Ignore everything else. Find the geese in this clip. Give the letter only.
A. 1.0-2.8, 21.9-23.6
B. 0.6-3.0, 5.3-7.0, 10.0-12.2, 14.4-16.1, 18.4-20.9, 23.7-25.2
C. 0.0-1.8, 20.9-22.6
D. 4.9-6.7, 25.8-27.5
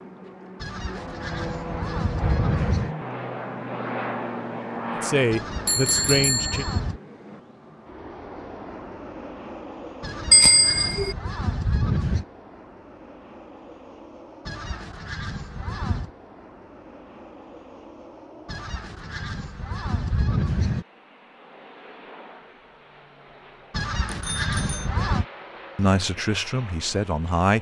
B.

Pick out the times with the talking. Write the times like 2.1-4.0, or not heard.
4.9-6.7, 25.8-27.5.